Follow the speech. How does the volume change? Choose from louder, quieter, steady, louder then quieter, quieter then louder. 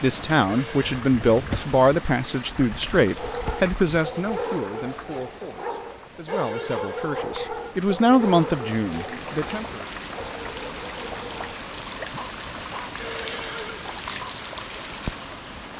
quieter then louder.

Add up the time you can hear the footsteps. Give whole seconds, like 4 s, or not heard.
not heard.